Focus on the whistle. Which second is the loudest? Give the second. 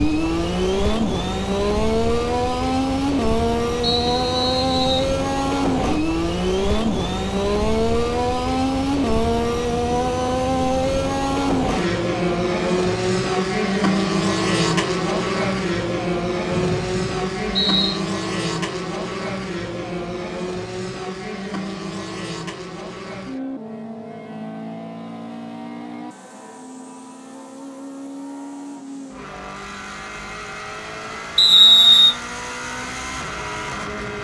32 s.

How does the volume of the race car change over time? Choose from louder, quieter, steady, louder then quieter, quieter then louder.
quieter.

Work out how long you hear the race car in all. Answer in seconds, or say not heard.
34 s.